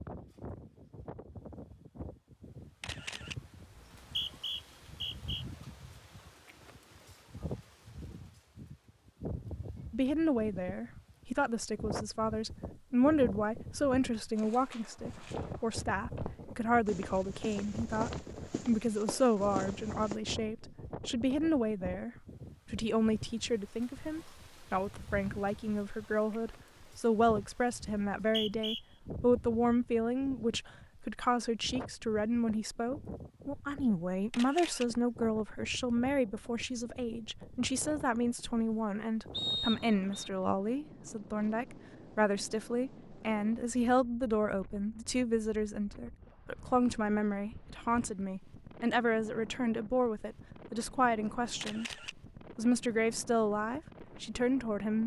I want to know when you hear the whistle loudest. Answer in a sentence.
The loudest moment of the whistle is at 40 seconds.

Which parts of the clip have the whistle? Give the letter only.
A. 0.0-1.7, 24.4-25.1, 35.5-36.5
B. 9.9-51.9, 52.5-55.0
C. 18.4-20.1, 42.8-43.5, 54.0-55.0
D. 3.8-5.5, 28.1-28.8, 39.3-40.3
D.